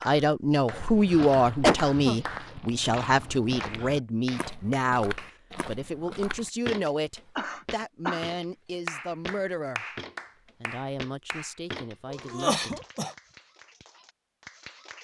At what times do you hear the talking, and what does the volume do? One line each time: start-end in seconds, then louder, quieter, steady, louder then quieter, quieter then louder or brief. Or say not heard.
0.0-9.8 quieter
10.6-12.8 brief.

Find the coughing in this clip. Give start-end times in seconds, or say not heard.
1.2-2.1, 7.3-8.3, 12.1-13.2.